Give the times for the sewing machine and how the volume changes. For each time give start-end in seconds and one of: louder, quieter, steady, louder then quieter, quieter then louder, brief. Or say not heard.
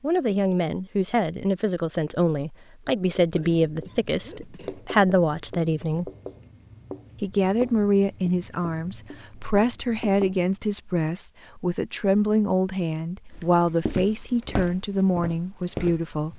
not heard.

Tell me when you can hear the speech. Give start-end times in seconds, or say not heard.
0.0-6.1, 7.2-16.3.